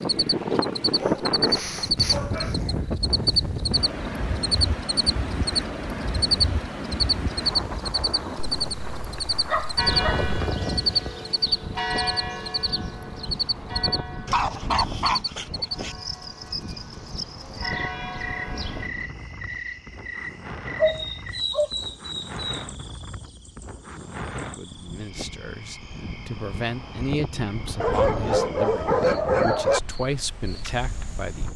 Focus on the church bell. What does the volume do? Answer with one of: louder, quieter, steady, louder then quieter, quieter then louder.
quieter then louder.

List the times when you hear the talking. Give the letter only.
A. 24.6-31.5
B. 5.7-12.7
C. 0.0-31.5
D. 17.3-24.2
A.